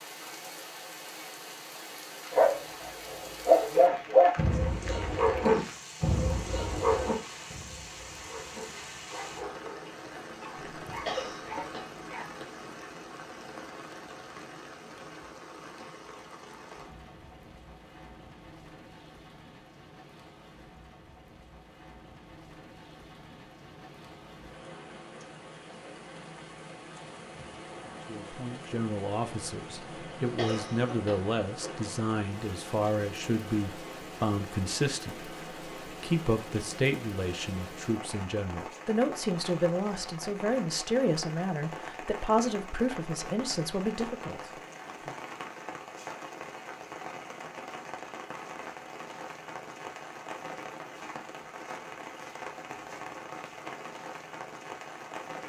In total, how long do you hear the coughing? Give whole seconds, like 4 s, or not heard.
3 s.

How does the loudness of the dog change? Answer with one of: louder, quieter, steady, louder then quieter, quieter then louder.
quieter.